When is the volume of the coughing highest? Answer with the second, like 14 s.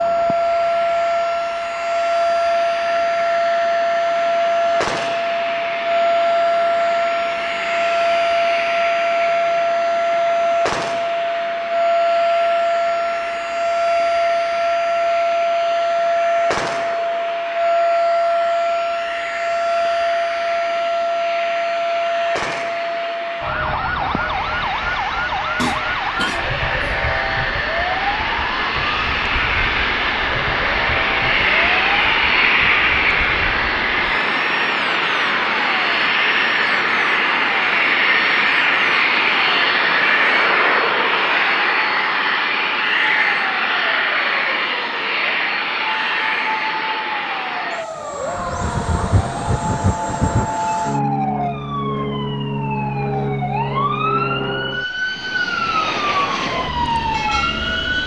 26 s.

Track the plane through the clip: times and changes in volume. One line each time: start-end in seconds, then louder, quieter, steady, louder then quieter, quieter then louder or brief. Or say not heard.
0.0-58.0 louder then quieter.